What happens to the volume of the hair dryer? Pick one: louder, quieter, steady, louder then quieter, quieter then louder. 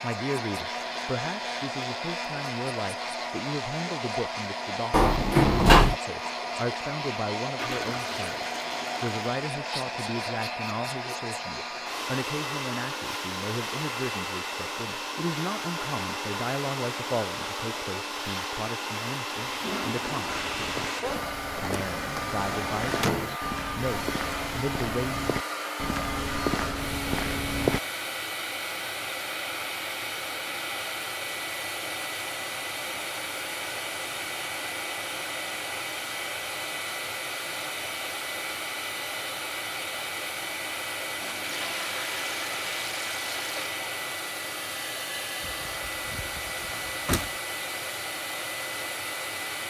steady.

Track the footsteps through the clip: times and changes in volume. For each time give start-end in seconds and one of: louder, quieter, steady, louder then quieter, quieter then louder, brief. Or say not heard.
20.2-27.8 louder.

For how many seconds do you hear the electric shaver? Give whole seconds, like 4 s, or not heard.
not heard.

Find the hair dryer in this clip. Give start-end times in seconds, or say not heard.
0.0-49.6.